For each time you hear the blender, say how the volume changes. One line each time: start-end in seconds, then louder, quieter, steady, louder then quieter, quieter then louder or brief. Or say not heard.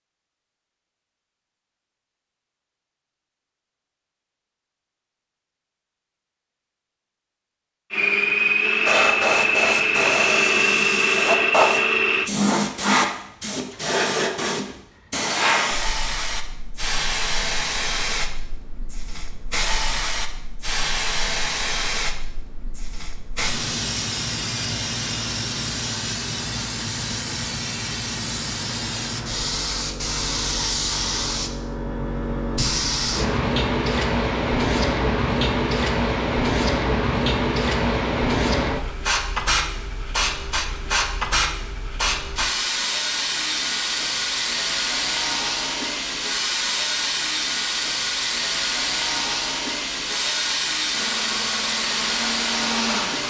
7.9-12.3 steady
50.9-53.2 brief.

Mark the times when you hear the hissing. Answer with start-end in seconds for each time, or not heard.
8.8-53.2.